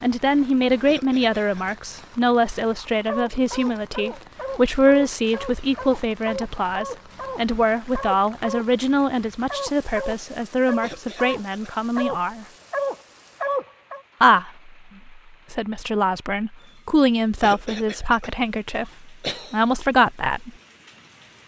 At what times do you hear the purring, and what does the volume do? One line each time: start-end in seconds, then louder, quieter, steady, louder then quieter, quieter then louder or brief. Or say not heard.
not heard.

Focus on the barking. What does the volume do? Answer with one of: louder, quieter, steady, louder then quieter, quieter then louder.
louder.